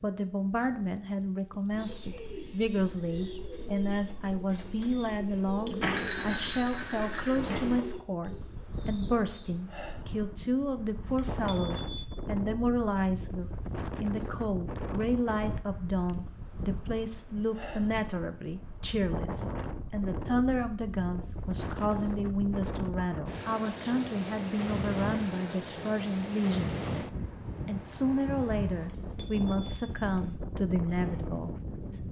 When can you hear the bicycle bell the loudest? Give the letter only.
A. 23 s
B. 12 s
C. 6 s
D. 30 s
C.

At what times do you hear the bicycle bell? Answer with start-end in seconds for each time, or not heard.
5.8-7.8, 11.0-12.1, 28.8-30.4.